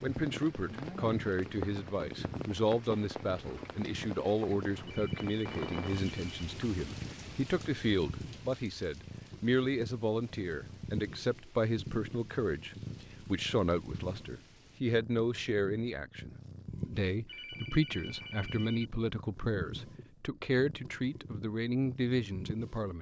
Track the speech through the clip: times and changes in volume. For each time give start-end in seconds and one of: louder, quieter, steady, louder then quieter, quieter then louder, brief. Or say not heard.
0.0-22.9 steady.